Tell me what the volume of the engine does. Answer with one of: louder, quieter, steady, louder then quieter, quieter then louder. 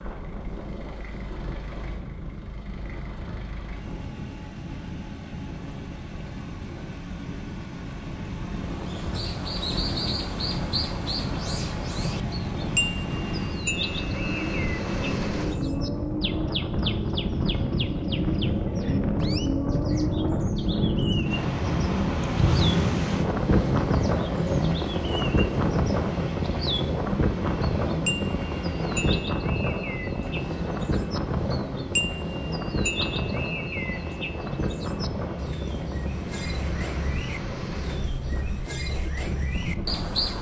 louder then quieter.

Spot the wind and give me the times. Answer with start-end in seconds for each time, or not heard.
0.0-40.1.